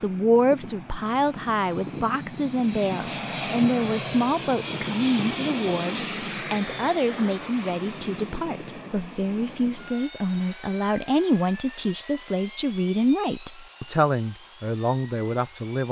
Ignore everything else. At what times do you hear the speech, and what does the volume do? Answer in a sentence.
The speech can be heard from 0.0 to 15.8 s, at a steady volume.